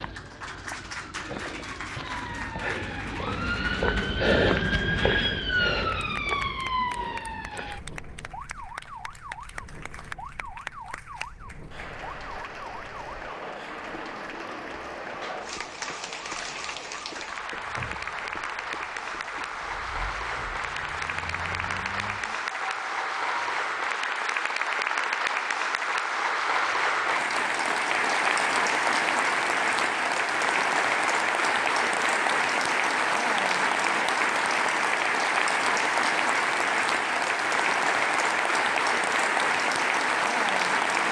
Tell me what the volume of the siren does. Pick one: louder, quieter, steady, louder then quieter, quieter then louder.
quieter.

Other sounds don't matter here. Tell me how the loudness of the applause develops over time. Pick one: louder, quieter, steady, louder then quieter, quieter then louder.
louder.